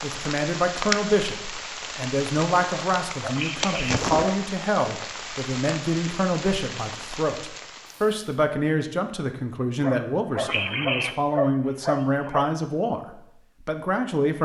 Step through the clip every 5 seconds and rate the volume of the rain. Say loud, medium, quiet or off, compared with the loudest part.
loud, medium, off.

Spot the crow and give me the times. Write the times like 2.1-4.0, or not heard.
not heard.